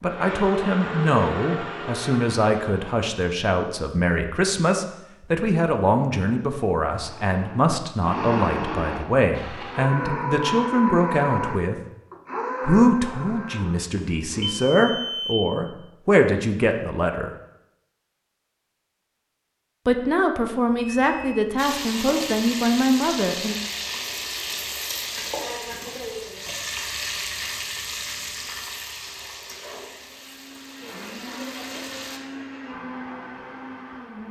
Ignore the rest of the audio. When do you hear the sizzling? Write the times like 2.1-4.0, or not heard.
21.6-32.2.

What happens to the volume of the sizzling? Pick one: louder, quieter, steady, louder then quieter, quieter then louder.
quieter.